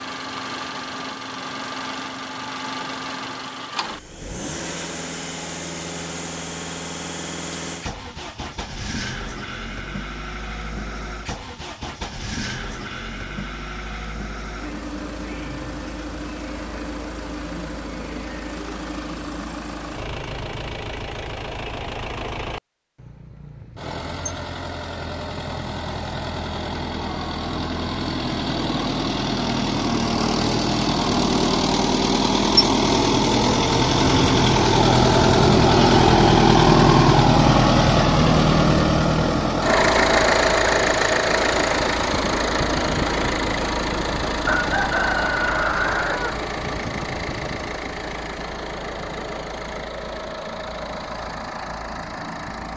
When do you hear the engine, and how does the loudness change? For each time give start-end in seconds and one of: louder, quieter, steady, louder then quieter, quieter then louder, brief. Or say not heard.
0.0-52.7 louder then quieter.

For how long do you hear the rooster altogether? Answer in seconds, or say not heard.
2 s.